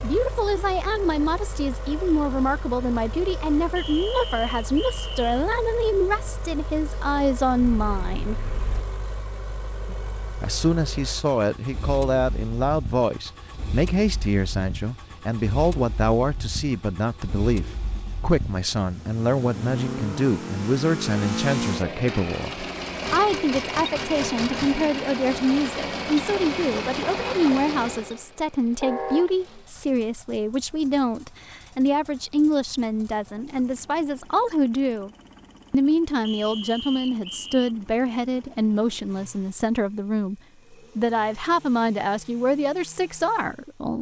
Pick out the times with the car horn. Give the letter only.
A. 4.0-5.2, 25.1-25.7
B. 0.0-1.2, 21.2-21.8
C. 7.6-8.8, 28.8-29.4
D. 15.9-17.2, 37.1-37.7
C.